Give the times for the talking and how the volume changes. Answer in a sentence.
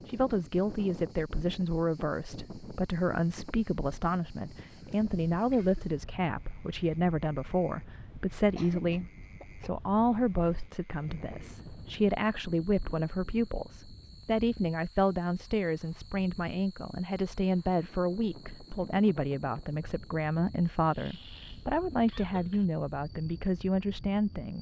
You can hear the talking from 0.1 to 24.5 s, at a steady volume.